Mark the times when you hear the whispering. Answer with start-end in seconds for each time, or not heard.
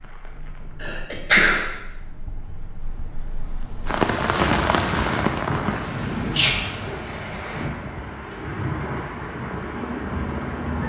not heard.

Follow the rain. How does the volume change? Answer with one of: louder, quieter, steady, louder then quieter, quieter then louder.
louder then quieter.